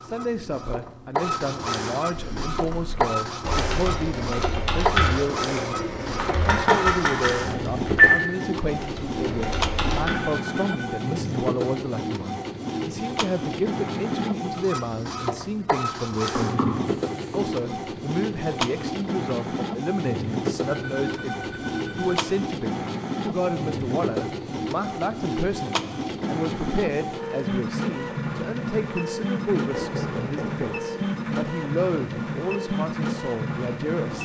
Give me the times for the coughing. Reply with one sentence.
The coughing can't be heard in this clip.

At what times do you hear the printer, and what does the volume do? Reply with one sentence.
The printer can be heard from 0.0 to 34.1 s, at a steady volume.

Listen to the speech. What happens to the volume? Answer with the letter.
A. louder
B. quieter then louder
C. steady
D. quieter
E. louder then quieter
C.